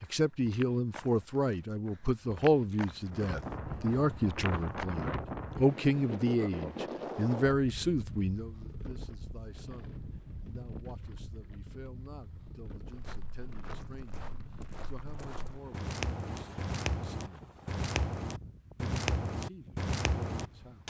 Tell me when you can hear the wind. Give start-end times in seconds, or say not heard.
3.0-20.8.